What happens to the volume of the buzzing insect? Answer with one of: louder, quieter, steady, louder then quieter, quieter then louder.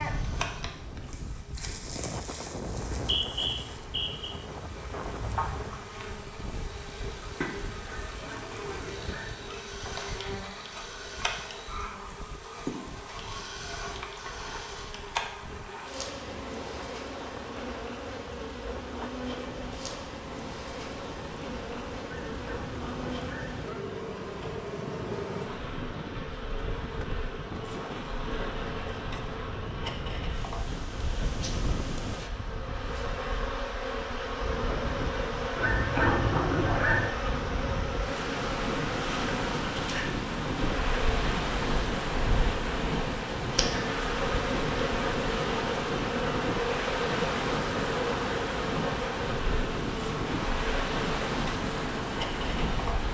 louder.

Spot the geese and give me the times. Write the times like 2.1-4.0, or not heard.
7.8-9.7, 22.0-23.9, 35.5-37.1.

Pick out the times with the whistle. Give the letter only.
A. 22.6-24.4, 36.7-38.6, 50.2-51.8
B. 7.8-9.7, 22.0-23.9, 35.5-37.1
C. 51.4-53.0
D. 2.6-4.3
D.